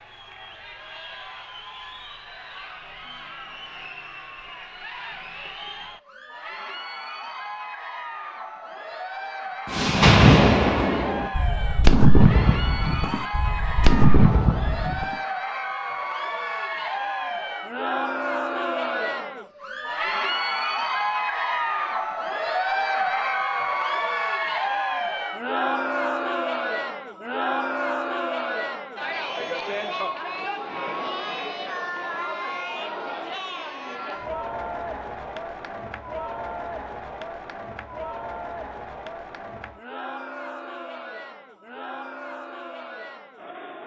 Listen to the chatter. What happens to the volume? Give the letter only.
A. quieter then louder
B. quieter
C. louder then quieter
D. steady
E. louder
C.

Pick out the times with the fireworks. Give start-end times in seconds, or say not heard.
9.7-15.2.